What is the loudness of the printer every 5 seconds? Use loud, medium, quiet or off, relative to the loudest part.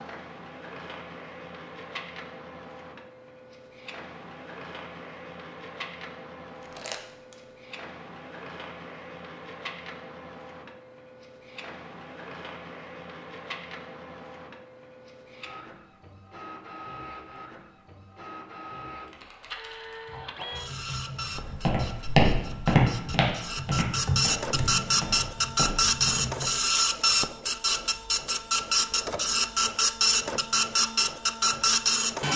quiet, quiet, quiet, quiet, medium, loud, loud.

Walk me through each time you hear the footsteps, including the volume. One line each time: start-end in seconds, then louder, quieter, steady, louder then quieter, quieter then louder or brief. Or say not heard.
21.4-26.4 quieter.